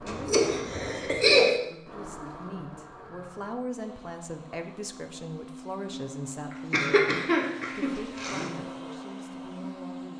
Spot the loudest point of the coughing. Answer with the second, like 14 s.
1 s.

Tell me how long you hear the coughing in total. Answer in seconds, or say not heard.
3 s.